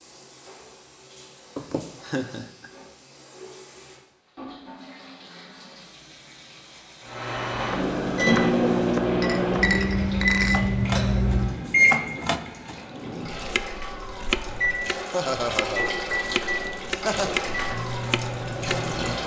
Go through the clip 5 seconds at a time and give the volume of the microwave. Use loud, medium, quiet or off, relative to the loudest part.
off, loud, loud, medium.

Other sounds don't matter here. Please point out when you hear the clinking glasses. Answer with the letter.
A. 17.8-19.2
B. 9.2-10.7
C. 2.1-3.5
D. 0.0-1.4
B.